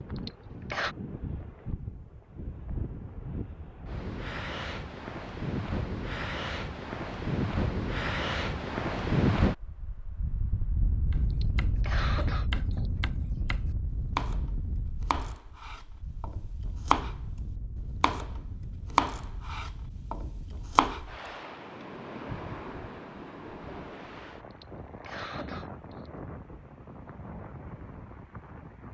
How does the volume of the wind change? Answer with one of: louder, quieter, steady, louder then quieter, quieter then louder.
louder then quieter.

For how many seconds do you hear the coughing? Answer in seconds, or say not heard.
4 s.